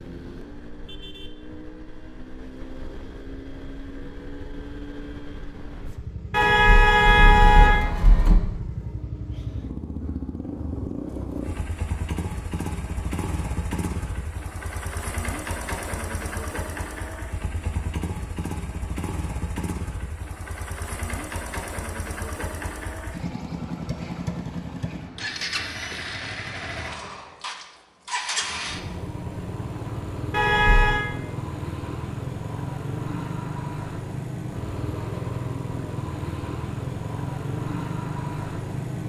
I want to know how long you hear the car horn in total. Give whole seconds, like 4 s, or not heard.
3 s.